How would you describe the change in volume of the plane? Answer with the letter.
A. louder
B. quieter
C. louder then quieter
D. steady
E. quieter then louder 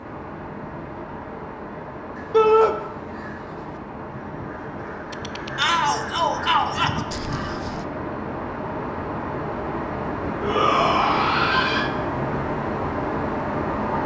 A.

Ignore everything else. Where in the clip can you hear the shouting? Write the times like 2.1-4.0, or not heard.
2.3-2.8, 5.5-7.0, 10.4-11.9.